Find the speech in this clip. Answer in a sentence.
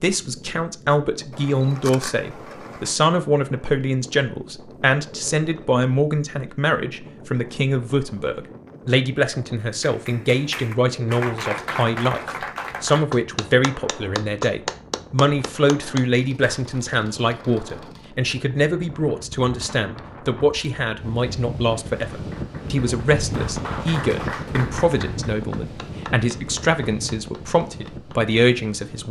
The speech can be heard from 0.0 to 12.2 s and from 12.8 to 29.0 s.